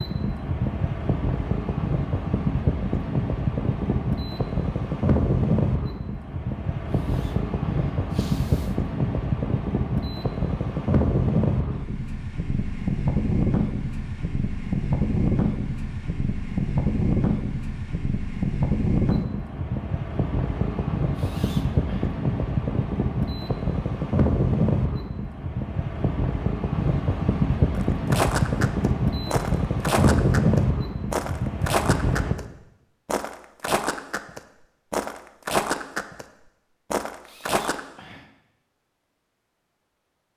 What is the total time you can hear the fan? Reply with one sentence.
You can hear the fan for 32 seconds altogether.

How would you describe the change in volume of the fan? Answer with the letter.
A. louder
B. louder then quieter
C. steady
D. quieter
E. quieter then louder
C.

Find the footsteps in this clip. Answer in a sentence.
You can hear the footsteps from 27.8 to 32.5 s, from 33.0 to 36.2 s and from 36.9 to 37.8 s.